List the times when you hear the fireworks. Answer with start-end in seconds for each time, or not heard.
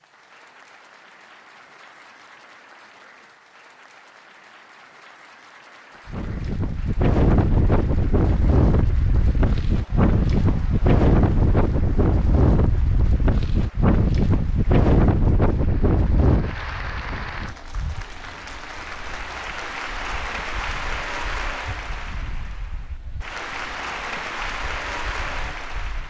not heard.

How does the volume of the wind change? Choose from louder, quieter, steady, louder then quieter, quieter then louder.
quieter.